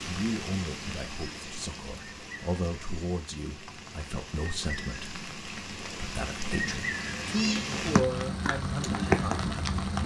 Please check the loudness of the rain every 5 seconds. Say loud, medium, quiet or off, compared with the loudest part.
medium, loud.